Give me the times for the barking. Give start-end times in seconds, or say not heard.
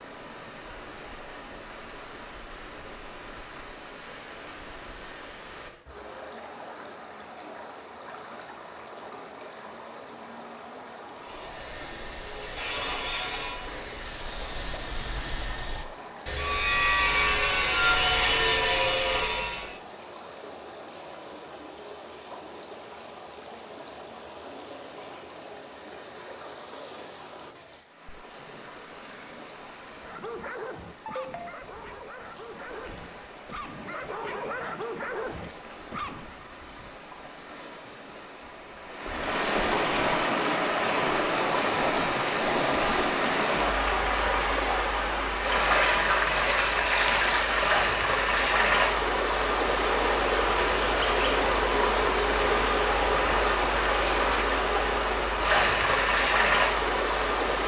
30.0-36.4.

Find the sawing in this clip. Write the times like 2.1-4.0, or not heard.
11.2-19.8.